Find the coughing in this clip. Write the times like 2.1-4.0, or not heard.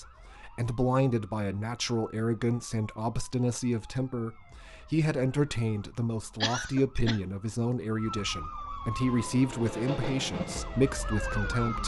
6.4-7.2.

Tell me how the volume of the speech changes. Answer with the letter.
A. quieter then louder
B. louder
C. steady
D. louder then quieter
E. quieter
C.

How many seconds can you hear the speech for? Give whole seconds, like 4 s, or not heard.
12 s.